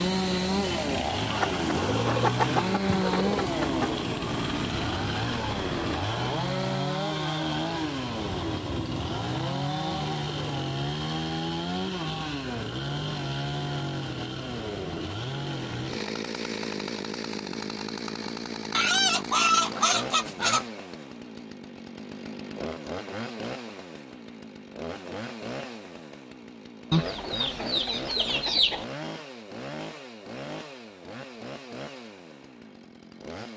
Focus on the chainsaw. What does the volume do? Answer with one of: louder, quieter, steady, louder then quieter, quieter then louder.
quieter.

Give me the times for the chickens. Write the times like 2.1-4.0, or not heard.
1.3-4.0, 18.7-20.6, 26.9-28.9.